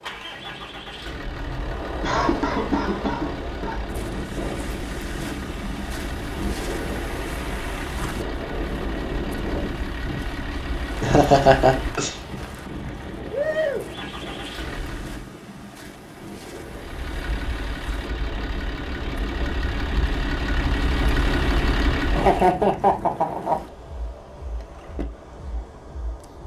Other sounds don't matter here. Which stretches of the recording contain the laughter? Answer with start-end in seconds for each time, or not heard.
2.0-3.8, 11.0-12.1, 22.1-23.6.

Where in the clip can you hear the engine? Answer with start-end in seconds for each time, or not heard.
0.0-15.3, 16.6-22.6.